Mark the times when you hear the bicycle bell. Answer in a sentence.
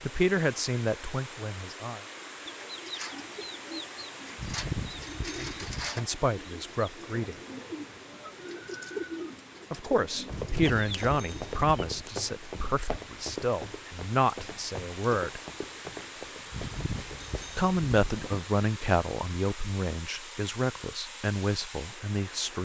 The bicycle bell can be heard from 4.3 to 5.9 s, from 10.2 to 12.1 s and from 16.5 to 18.1 s.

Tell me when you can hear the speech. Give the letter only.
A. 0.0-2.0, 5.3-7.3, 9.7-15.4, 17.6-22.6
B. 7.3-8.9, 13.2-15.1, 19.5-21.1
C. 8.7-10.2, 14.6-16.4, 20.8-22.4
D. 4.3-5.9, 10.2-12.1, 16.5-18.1
A.